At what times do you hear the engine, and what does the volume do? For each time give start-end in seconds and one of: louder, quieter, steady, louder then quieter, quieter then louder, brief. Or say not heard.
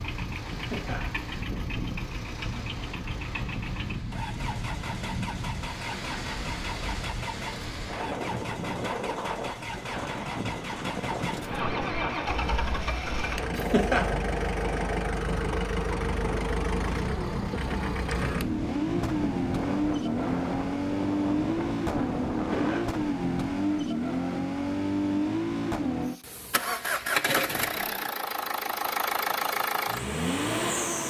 0.0-31.0 louder.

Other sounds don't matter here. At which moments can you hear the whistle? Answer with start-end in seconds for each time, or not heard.
not heard.